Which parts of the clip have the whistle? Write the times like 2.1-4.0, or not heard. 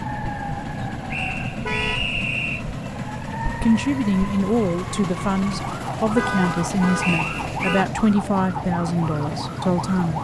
1.1-2.6, 7.0-7.8.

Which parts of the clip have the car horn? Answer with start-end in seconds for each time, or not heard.
1.6-2.1, 6.0-7.8.